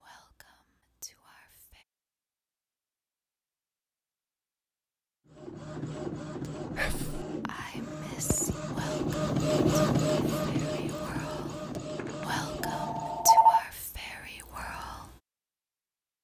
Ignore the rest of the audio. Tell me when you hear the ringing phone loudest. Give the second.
13 s.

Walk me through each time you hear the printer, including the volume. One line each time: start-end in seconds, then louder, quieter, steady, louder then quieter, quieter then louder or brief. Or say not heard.
5.2-13.4 louder then quieter.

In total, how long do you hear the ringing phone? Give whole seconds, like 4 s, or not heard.
2 s.